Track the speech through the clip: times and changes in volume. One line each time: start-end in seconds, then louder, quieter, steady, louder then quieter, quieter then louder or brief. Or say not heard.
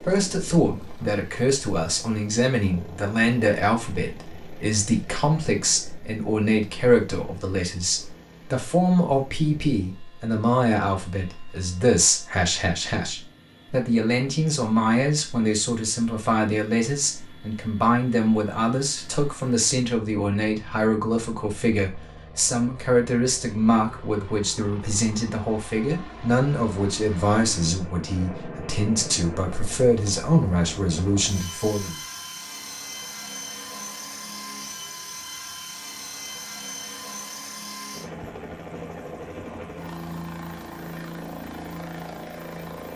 0.0-32.0 steady.